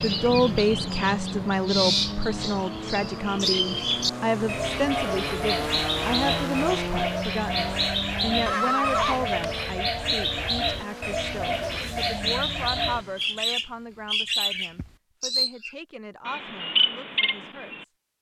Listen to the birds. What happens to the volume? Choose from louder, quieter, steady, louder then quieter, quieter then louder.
steady.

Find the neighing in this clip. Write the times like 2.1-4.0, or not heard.
8.4-9.7.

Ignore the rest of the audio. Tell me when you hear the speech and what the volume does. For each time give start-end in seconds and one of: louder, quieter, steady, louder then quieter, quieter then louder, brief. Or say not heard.
0.0-17.9 quieter.